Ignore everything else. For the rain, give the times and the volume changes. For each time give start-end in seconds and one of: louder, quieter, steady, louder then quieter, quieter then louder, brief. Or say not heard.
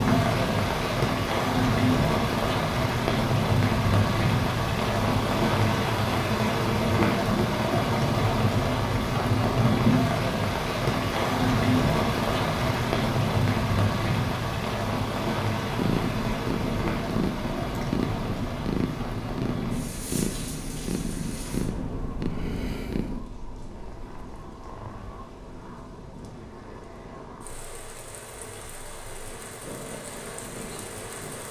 0.0-31.4 quieter.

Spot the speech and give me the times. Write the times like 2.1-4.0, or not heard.
not heard.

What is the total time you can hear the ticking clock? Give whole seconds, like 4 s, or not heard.
not heard.